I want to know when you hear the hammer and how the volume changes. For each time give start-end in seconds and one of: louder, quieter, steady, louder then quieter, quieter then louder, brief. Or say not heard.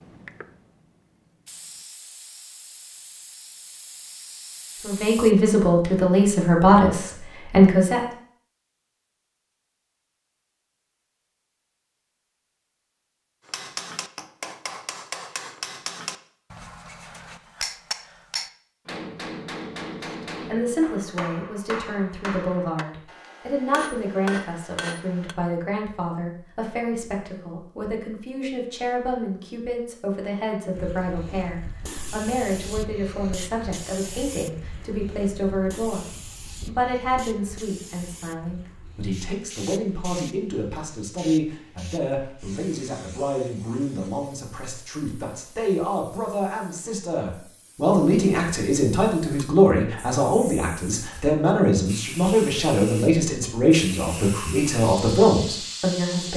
13.4-25.4 steady.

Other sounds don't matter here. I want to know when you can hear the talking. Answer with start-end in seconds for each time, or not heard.
4.8-8.0, 20.4-56.3.